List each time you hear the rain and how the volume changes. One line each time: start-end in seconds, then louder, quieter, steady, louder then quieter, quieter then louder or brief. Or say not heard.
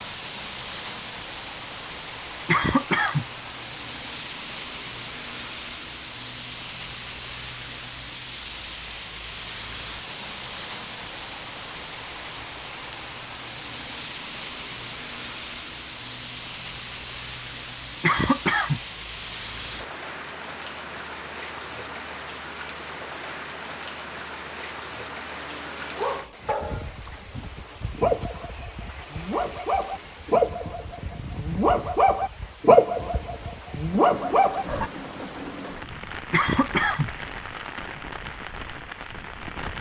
0.0-39.7 steady.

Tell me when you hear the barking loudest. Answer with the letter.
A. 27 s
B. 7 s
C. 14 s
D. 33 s
D.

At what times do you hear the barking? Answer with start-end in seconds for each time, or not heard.
25.6-34.9.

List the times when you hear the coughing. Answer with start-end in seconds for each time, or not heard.
2.5-3.2, 18.0-18.8, 36.3-37.1.